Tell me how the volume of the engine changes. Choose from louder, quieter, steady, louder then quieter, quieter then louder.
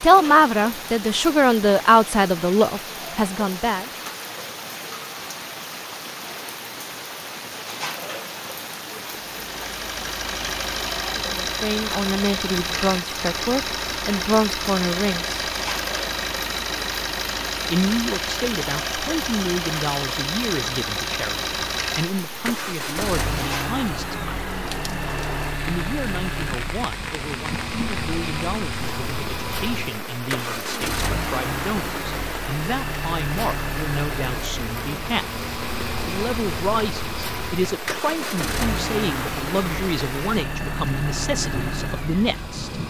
steady.